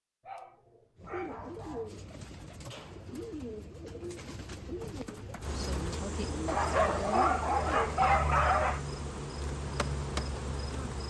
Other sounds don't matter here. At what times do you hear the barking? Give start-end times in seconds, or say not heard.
0.2-1.9, 6.5-8.8.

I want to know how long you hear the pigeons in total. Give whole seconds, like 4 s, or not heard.
7 s.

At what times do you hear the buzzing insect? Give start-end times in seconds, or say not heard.
5.4-11.0.